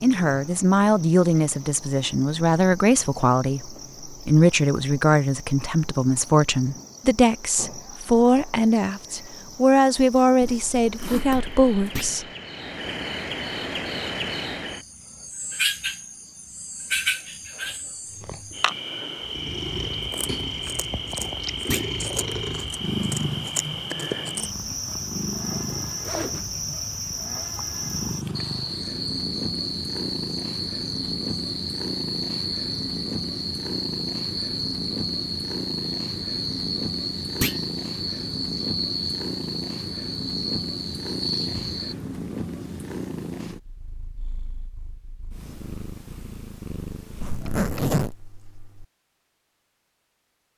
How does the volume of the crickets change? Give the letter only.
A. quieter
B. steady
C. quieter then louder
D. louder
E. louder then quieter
D.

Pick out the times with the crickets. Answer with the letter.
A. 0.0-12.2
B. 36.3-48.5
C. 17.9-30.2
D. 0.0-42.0
D.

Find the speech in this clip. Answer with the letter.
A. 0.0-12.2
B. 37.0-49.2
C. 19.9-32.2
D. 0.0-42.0
A.